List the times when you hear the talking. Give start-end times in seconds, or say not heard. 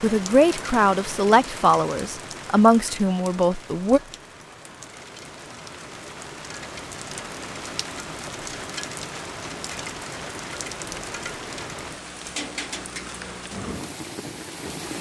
0.0-4.0.